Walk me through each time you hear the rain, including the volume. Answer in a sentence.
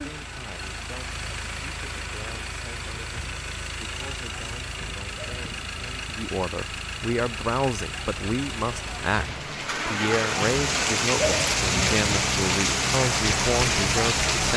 You can hear the rain from 0.0 to 14.5 s, getting louder.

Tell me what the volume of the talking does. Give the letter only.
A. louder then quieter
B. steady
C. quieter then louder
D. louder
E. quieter
D.